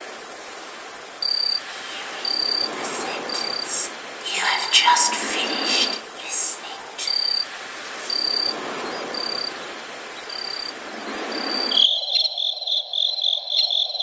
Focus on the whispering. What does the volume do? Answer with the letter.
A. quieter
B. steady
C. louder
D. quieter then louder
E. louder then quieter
E.